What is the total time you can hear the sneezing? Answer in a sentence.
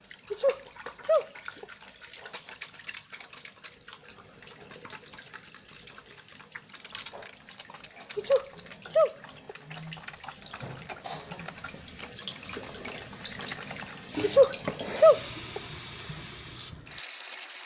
You can hear the sneezing for 4 seconds altogether.